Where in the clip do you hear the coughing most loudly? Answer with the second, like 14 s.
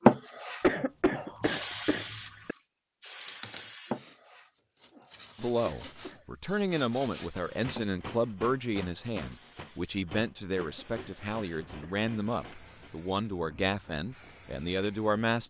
1 s.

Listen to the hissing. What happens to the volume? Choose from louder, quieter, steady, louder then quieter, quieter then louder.
quieter.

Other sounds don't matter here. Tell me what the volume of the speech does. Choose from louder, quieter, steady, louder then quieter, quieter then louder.
steady.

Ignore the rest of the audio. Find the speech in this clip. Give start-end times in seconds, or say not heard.
5.3-15.4.